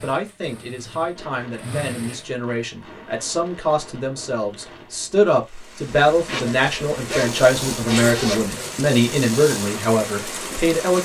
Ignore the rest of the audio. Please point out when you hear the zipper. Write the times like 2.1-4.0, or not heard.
5.8-8.6.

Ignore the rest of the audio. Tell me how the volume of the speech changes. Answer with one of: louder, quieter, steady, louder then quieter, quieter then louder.
louder.